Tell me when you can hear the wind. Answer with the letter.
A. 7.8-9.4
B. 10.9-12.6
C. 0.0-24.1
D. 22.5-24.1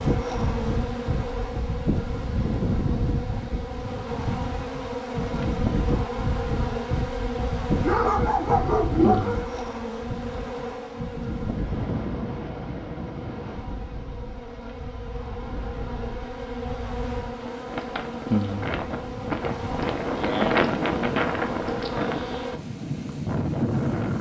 C.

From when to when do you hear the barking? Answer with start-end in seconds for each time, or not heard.
7.8-9.4.